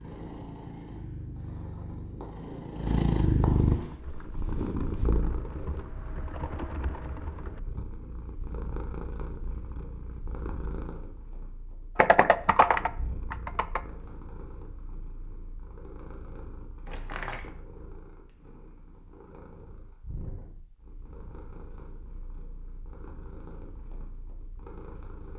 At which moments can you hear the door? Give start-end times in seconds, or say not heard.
16.9-17.5.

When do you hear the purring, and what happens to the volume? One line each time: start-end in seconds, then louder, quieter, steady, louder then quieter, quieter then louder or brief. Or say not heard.
0.0-25.3 quieter.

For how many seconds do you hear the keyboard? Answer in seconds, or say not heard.
6 s.